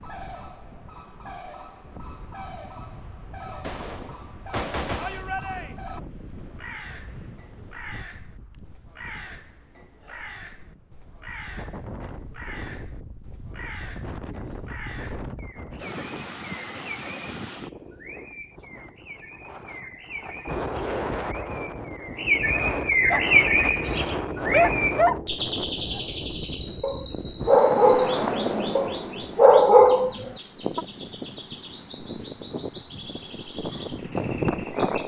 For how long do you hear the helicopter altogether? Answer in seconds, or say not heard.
not heard.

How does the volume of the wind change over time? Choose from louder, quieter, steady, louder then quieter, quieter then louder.
louder.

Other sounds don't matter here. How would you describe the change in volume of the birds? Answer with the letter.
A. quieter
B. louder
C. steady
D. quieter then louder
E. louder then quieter
E.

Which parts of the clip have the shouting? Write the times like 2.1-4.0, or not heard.
5.0-5.8.